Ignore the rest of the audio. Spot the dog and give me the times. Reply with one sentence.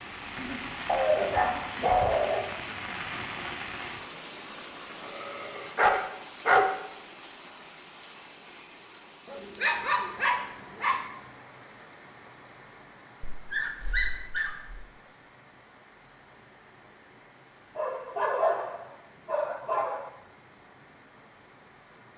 You can hear the dog from 0.8 to 2.5 s, from 4.9 to 6.8 s, from 9.2 to 11.1 s, from 13.2 to 14.8 s and from 17.8 to 20.1 s.